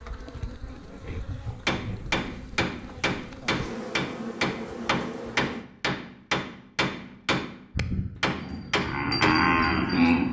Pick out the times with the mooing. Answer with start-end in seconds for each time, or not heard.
7.8-10.2.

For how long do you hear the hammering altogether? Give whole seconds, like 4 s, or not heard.
8 s.